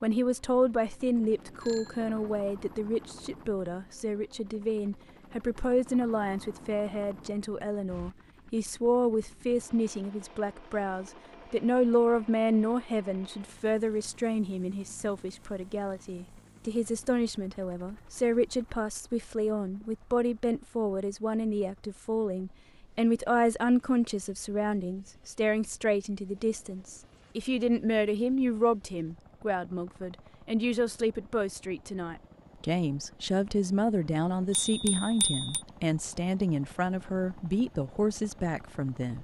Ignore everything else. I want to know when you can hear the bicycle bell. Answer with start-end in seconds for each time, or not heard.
1.1-2.4, 34.5-35.6.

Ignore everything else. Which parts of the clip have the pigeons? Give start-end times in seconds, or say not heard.
not heard.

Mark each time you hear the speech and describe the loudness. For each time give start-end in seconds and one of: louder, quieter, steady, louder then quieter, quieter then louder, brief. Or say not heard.
0.0-39.1 steady.